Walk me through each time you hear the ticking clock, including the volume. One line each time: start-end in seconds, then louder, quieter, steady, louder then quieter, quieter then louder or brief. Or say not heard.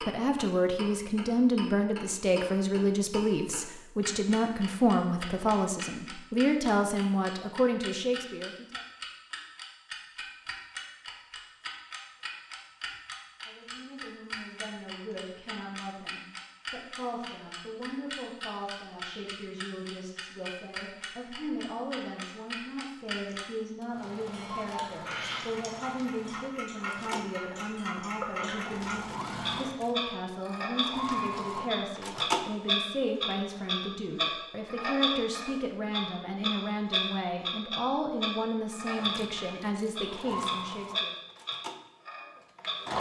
0.0-42.8 louder.